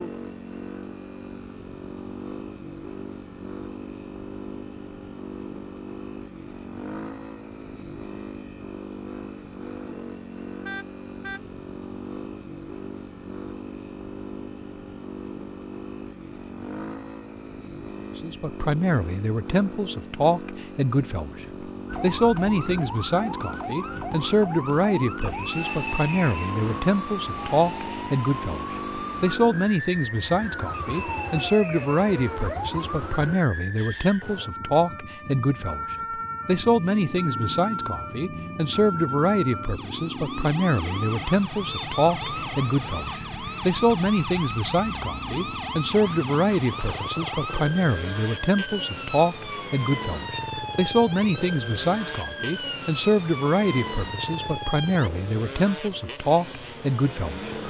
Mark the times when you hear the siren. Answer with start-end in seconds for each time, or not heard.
21.9-55.1.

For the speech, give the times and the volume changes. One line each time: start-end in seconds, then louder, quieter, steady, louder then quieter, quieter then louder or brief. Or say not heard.
18.1-57.5 steady.